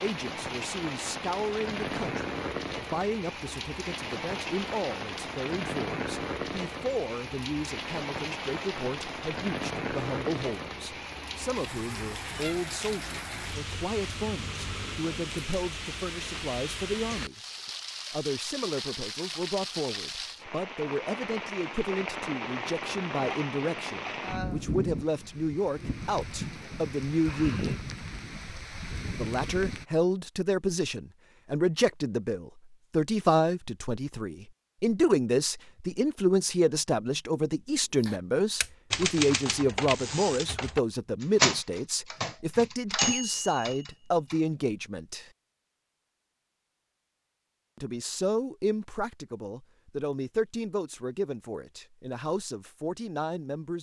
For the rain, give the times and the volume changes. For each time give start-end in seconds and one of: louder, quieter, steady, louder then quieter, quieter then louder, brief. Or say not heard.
0.0-29.9 steady.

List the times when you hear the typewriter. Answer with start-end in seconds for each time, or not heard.
38.0-44.4.